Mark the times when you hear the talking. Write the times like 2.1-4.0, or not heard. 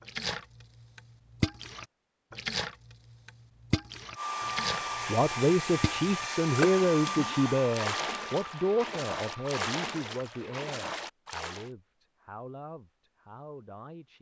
5.0-14.1.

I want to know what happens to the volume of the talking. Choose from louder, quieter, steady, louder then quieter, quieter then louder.
quieter.